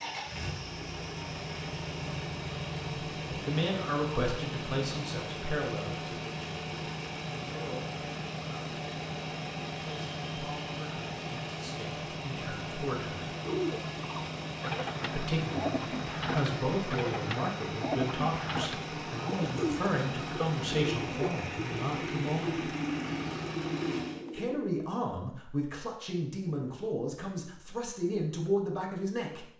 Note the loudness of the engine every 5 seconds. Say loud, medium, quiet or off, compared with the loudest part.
loud, loud, loud, loud, loud, off.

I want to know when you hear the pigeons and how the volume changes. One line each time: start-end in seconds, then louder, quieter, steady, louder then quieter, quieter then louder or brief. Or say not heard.
13.4-24.7 steady.